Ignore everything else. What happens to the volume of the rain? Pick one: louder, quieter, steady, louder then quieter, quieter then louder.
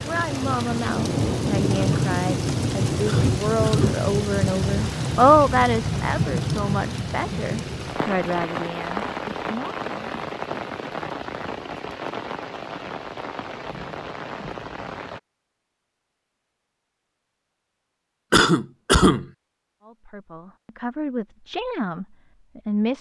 quieter.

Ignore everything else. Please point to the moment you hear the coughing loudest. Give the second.
19 s.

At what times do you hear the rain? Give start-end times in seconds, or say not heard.
0.0-15.2.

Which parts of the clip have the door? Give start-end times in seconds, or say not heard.
not heard.